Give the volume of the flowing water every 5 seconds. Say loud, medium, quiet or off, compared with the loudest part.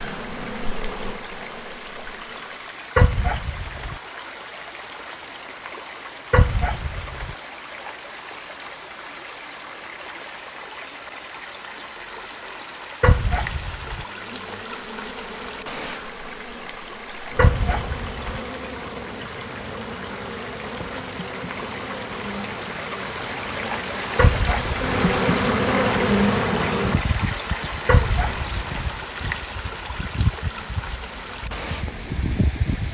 medium, medium, medium, medium, loud, loud, medium.